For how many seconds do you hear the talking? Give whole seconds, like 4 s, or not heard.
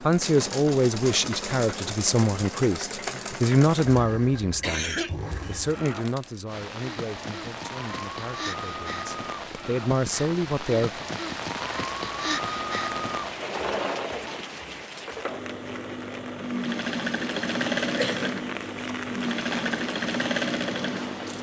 11 s.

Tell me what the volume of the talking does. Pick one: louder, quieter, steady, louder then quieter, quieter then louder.
quieter then louder.